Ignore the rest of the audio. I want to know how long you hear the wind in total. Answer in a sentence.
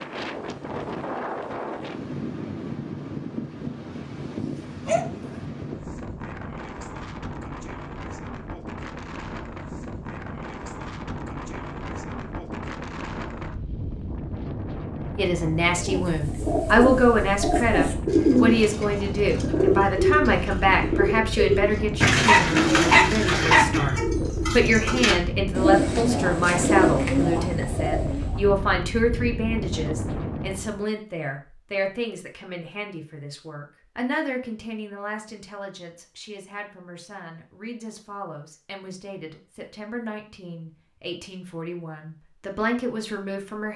You can hear the wind for 31 seconds altogether.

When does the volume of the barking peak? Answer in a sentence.
The volume of the barking peaks at 23 seconds.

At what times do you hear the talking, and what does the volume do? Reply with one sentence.
You can hear the talking from 14.9 to 43.7 s, getting quieter.